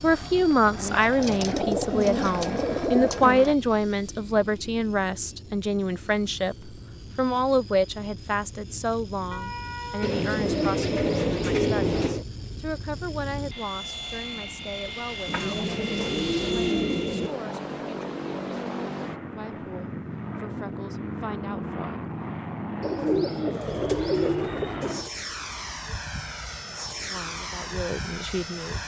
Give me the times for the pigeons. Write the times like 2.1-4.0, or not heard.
0.8-3.5, 10.0-12.2, 15.2-17.3, 22.8-25.1.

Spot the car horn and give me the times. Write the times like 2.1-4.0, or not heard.
9.3-10.2.